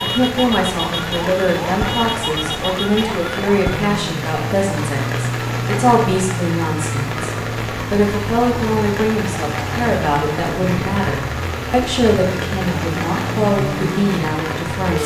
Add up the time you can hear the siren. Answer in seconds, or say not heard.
15 s.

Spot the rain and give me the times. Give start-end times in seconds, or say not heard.
0.0-15.0.